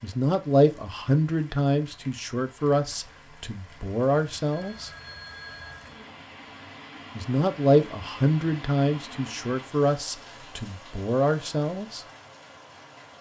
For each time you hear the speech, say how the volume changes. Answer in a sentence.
You can hear the speech from 0.0 to 4.9 s, getting quieter then louder; and from 7.2 to 12.1 s, getting quieter then louder.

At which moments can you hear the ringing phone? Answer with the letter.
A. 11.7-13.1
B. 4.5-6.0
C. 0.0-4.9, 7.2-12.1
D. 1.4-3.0
B.